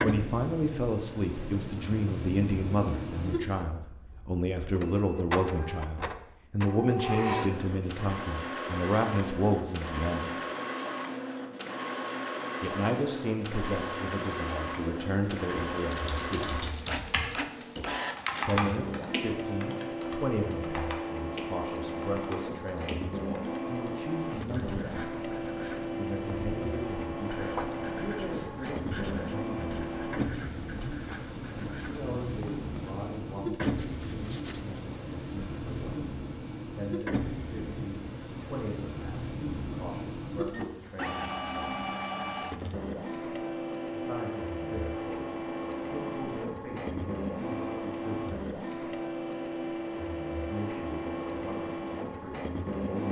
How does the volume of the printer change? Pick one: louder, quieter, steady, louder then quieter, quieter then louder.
steady.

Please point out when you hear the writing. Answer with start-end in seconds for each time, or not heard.
24.4-34.9.